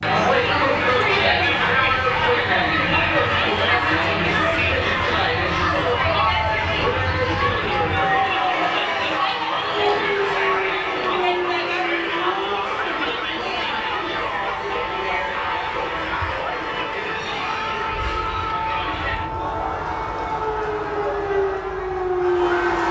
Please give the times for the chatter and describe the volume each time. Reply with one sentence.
You can hear the chatter from 0.0 to 22.8 s, getting quieter.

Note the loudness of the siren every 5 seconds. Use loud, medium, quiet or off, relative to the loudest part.
quiet, medium, medium, medium, loud.